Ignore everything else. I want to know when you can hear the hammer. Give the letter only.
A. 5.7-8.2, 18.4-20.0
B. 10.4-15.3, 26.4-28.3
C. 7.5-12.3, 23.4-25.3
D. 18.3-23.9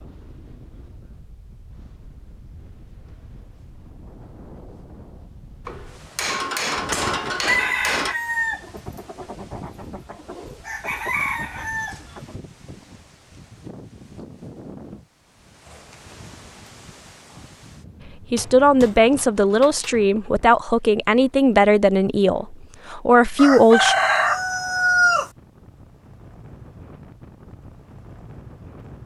A.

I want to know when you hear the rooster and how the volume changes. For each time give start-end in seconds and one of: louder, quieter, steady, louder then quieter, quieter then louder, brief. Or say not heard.
7.5-12.3 quieter then louder
23.4-25.3 brief.